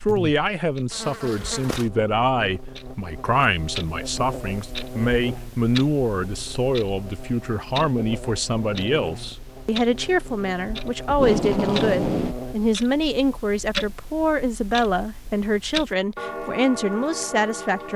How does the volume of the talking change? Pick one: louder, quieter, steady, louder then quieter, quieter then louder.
steady.